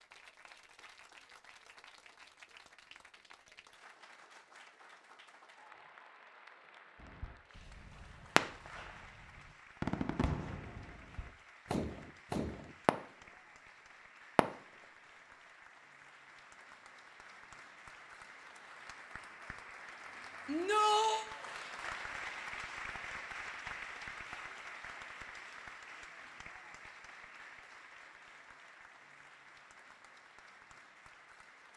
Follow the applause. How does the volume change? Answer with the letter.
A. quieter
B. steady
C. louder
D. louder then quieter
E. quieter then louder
D.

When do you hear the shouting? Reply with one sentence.
You can hear the shouting from 20.4 to 21.3 s.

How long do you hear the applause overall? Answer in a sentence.
You can hear the applause for 32 seconds altogether.